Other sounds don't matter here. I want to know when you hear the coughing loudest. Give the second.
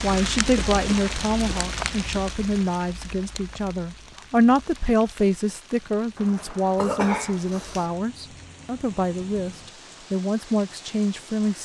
7 s.